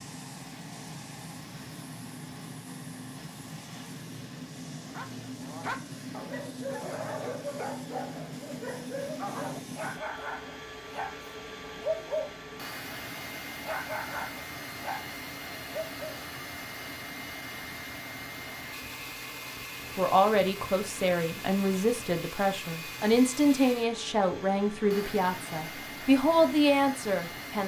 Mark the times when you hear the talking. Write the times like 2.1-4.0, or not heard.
19.9-27.6.